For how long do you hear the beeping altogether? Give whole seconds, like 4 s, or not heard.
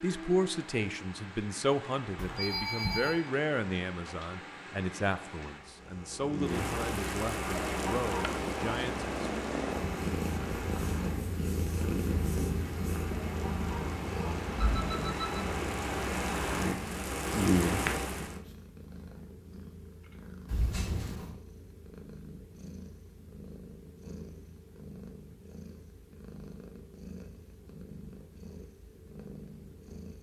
3 s.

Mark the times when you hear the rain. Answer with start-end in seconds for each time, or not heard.
0.0-18.4.